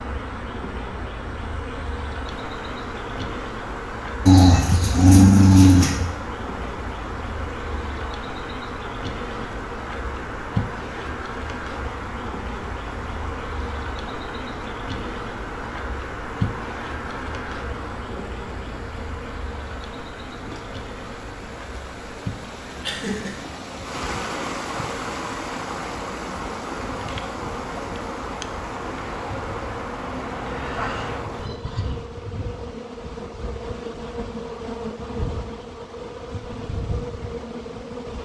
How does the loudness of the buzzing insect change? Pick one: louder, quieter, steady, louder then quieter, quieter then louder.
steady.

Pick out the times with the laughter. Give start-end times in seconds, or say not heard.
22.8-23.4.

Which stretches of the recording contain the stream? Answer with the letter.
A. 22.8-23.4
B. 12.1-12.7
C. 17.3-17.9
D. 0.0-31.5
D.